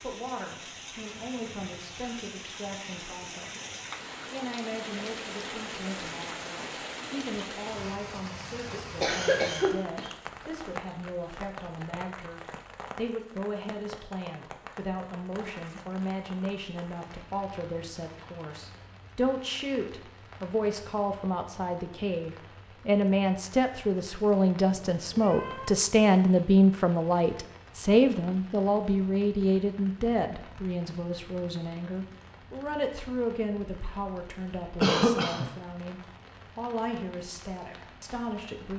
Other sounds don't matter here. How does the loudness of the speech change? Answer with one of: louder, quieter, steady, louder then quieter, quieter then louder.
louder then quieter.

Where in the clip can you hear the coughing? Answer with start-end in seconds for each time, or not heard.
8.7-10.1, 34.8-35.5.